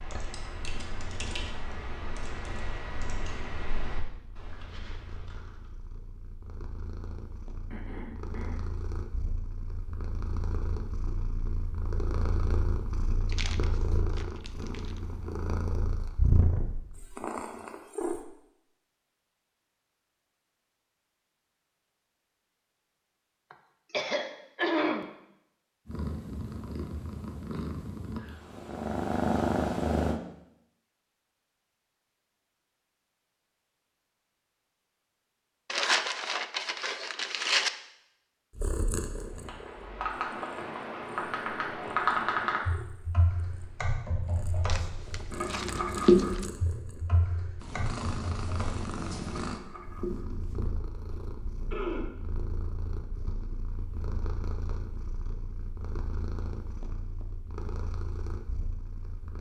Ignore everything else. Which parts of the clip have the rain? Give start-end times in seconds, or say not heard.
not heard.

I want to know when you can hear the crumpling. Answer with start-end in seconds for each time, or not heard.
13.2-15.0, 35.6-37.7, 44.6-46.5.